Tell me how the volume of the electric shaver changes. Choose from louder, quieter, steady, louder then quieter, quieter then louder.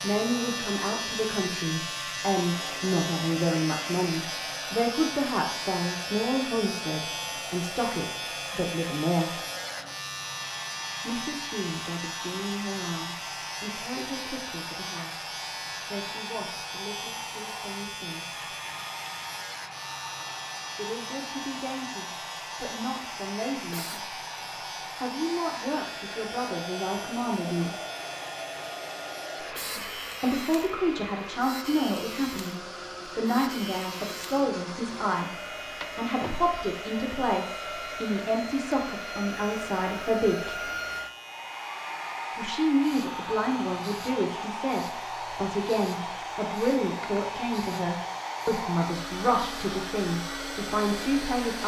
quieter.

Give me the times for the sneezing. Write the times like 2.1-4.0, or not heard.
23.6-24.1, 29.4-30.0.